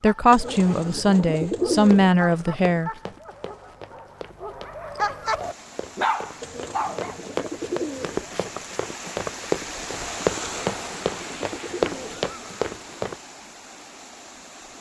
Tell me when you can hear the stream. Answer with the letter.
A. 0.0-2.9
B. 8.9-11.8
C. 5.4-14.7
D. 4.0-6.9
C.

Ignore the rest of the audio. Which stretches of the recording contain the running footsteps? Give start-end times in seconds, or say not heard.
1.8-13.2.